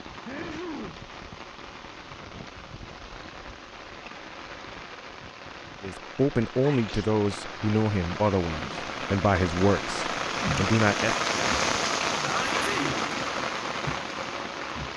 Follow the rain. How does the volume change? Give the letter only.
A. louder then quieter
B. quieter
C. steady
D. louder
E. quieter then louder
D.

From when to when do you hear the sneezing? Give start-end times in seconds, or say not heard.
0.2-1.0, 6.6-7.2, 12.2-13.3.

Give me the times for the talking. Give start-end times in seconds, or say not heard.
5.8-11.2.